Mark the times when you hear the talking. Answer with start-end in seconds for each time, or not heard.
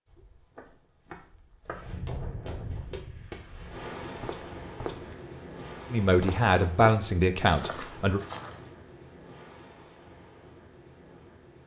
5.9-8.2.